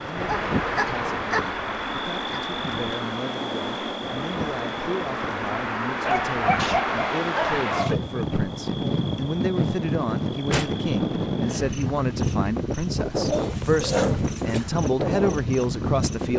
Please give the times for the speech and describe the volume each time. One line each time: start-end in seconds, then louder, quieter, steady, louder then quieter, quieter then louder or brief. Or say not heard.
0.0-16.3 louder.